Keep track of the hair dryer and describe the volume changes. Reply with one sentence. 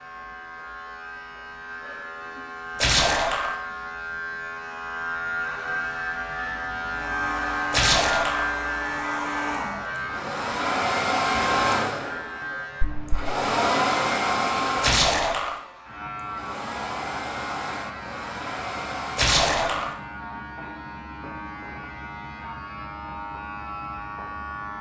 The volume of the hair dryer goes up, then down.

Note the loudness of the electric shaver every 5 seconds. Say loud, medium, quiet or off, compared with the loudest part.
medium, loud, medium, medium, medium.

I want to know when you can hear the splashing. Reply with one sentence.
The splashing can be heard from 2.8 to 3.5 s, from 7.7 to 8.4 s, from 14.8 to 15.6 s and from 19.1 to 19.9 s.